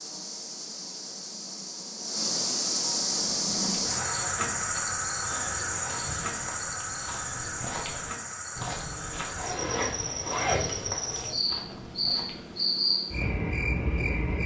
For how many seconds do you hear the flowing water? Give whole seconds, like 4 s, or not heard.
not heard.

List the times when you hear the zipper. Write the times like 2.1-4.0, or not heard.
9.3-10.9.